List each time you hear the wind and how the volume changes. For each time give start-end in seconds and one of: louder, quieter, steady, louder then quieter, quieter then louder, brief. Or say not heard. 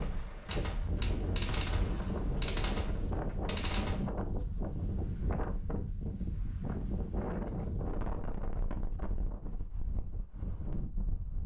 0.0-11.4 quieter.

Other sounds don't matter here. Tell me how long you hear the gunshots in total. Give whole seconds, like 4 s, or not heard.
4 s.